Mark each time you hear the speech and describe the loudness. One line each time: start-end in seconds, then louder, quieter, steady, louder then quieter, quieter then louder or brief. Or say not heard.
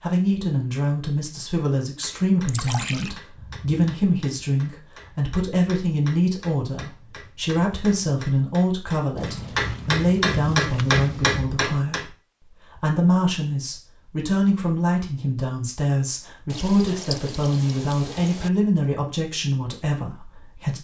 0.0-20.8 steady.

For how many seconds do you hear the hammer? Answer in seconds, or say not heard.
10 s.